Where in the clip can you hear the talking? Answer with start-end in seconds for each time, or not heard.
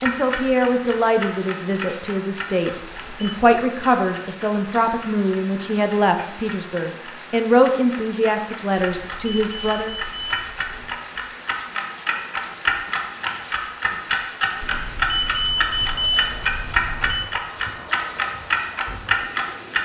0.0-9.9.